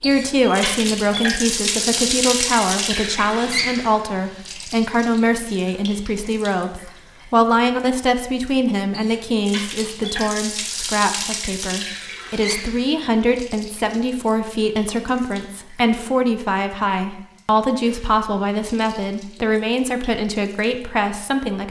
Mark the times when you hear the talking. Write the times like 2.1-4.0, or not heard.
0.0-21.6.